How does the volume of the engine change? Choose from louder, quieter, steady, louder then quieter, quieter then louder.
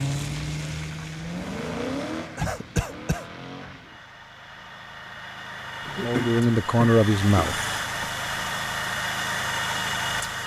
quieter then louder.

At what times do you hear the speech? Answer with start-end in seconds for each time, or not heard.
6.0-8.1.